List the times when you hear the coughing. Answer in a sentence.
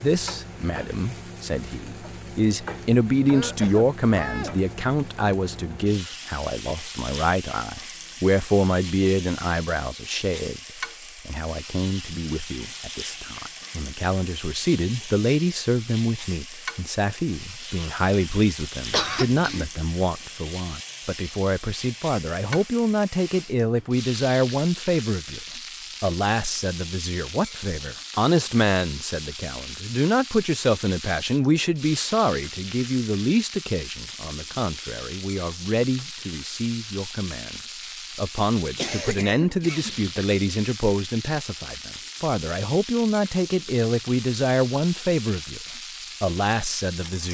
The coughing can be heard from 3.3 to 4.7 s, from 18.9 to 19.6 s and from 38.8 to 40.2 s.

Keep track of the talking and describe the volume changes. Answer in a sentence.
The loudness of the talking stays about the same.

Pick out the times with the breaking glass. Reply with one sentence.
You can't hear the breaking glass here.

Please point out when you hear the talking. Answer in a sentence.
You can hear the talking from 0.0 to 10.6 s and from 11.2 to 47.3 s.